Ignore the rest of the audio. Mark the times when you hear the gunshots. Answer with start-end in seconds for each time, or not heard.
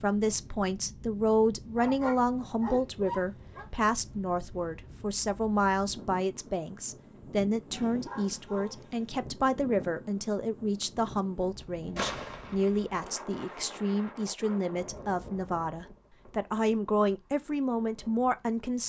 11.9-13.2.